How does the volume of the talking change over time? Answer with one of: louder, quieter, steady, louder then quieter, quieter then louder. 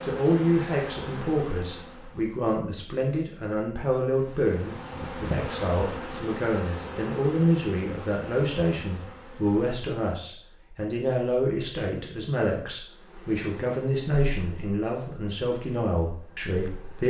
steady.